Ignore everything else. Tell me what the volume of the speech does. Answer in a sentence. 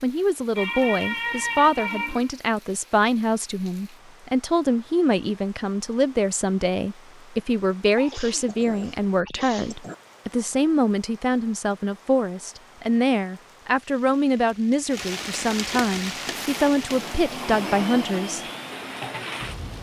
The loudness of the speech stays about the same.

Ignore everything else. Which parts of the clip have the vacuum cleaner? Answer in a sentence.
You can hear the vacuum cleaner from 16.0 to 19.7 s.